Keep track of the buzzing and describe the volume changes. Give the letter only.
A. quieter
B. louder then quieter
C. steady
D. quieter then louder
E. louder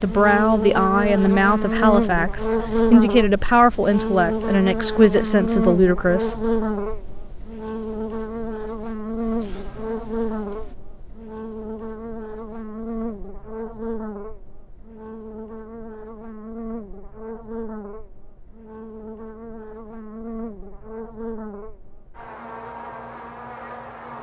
A.